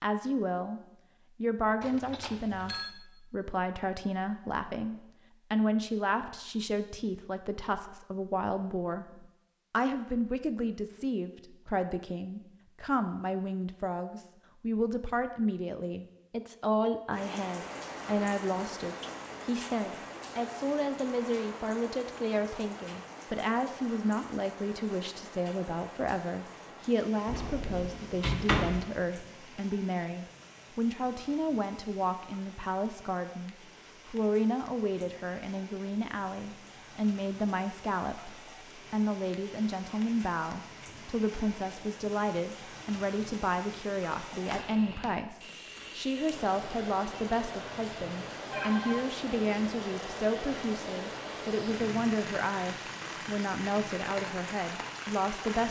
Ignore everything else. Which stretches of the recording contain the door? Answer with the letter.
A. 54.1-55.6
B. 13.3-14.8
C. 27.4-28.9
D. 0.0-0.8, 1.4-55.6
C.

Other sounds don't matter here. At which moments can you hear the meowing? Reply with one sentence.
The meowing can't be heard in this clip.